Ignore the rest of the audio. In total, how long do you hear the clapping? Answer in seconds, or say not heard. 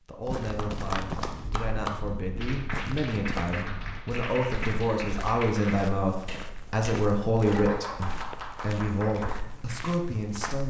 10 s.